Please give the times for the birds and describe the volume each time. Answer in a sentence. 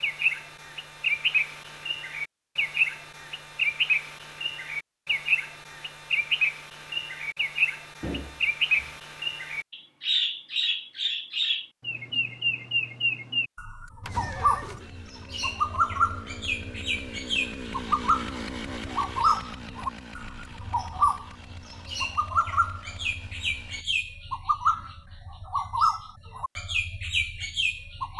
You can hear the birds from 0.0 to 28.1 s, at a steady volume.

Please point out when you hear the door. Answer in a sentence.
The door can be heard from 8.0 to 9.0 s.